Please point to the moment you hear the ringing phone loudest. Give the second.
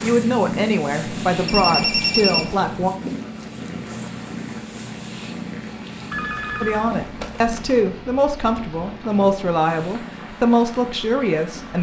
2 s.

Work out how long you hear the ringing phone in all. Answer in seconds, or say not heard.
3 s.